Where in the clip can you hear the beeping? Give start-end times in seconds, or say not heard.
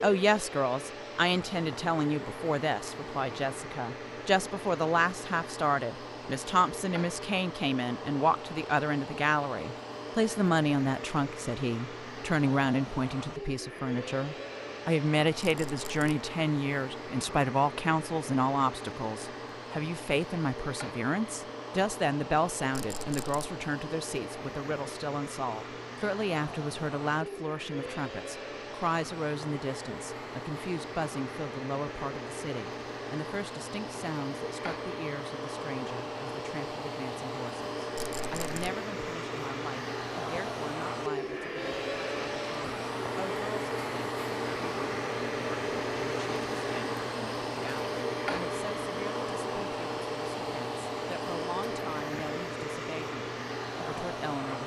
not heard.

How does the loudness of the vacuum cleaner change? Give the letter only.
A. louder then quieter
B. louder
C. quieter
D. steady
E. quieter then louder
B.